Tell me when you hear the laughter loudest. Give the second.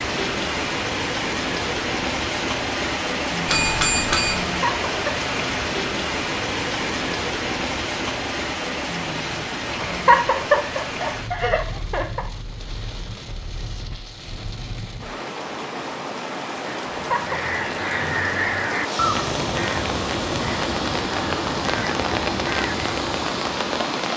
10 s.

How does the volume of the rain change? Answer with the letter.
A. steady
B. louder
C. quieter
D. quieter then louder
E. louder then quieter
D.